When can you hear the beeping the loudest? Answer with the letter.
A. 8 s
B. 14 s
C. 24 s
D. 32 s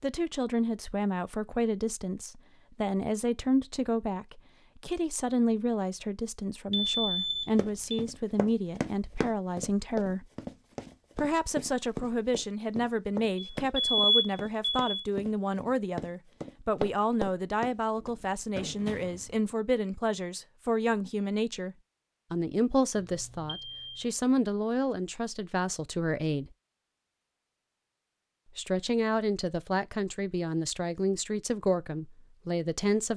B.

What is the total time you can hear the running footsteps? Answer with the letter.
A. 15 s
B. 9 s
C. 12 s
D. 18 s
C.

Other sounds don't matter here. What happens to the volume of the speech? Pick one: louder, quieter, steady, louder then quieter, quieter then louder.
steady.